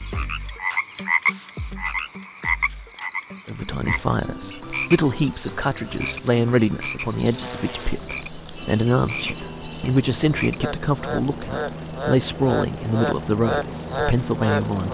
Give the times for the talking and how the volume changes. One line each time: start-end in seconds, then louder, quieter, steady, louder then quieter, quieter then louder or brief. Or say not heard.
3.5-14.8 steady.